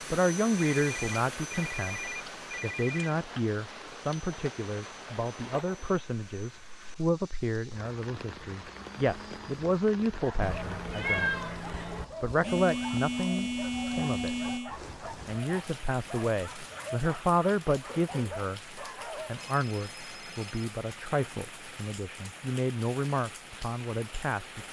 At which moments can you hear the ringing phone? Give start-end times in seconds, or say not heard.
0.8-3.1, 12.4-14.8, 19.4-20.7.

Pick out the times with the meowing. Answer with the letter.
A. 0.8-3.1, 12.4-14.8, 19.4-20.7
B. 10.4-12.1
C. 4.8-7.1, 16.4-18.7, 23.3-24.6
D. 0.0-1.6
B.